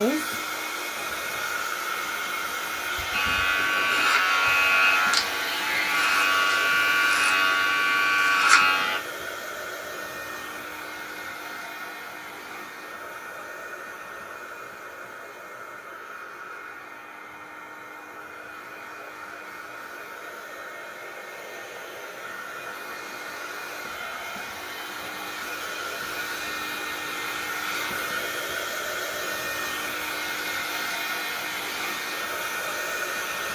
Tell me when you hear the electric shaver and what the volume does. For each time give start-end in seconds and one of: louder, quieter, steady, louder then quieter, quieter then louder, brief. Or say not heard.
3.1-9.0 steady.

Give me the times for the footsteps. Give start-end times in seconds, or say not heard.
not heard.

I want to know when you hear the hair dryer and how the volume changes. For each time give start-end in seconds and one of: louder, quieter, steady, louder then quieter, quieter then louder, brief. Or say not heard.
0.0-33.5 quieter then louder.